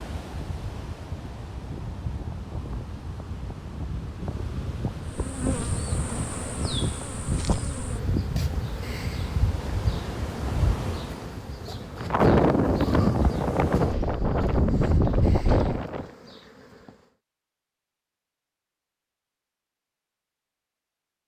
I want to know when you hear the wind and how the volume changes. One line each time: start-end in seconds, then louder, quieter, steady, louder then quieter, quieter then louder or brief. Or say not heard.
0.0-16.1 louder.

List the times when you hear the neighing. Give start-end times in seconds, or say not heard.
not heard.